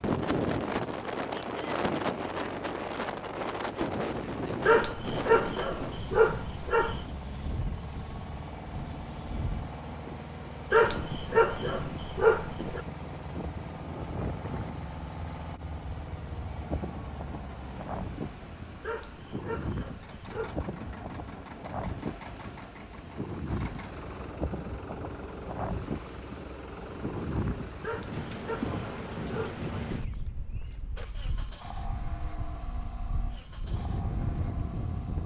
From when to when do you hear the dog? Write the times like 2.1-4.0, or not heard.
4.7-7.0, 10.7-12.8, 18.8-20.6, 27.8-29.6.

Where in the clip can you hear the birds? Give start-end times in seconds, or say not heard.
not heard.